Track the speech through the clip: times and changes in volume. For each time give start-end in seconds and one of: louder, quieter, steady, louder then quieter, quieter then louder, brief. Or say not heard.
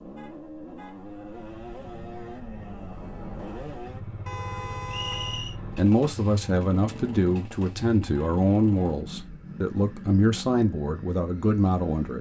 5.8-12.1 steady.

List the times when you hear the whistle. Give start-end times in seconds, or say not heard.
4.8-5.5.